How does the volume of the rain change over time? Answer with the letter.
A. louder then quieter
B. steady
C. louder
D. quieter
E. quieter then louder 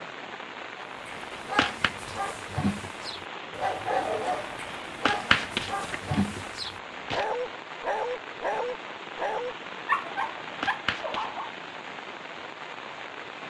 B.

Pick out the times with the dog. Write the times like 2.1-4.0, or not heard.
0.8-11.6.